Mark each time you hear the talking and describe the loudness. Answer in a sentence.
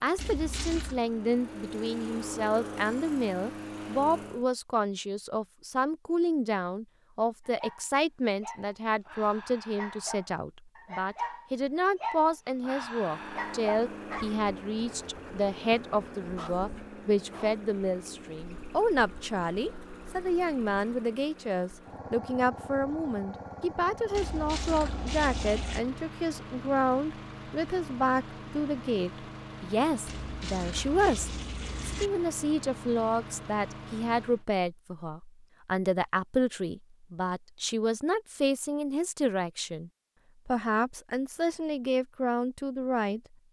The talking can be heard from 0.0 to 43.2 s, at a steady volume.